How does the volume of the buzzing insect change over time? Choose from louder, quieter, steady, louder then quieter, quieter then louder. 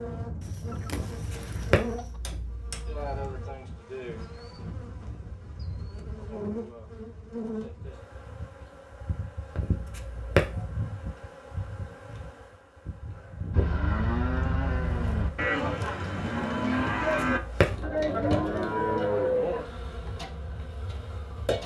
steady.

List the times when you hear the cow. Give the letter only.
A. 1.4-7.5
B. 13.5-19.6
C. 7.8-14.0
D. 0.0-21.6
B.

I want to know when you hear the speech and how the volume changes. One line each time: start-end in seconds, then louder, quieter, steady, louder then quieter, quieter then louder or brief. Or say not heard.
not heard.